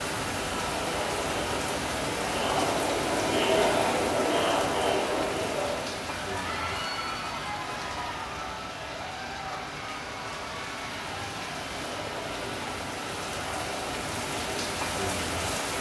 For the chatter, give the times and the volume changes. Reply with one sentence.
You can hear the chatter from 0.2 to 15.7 s, getting quieter.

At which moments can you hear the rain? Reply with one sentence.
You can hear the rain from 0.0 to 15.7 s.